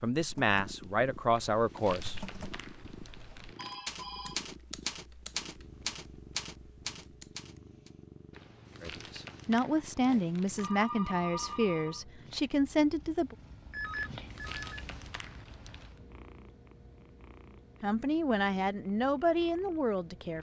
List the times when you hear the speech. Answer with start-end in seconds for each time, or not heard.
0.0-2.2, 8.8-13.3, 17.8-20.3.